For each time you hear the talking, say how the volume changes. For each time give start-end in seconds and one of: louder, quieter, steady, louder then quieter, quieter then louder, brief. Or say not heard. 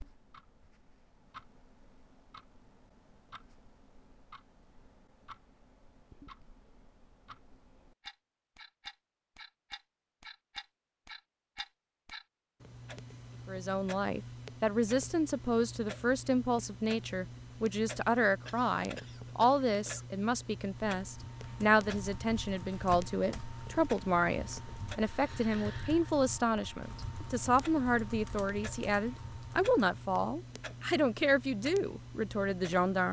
13.4-33.0 steady.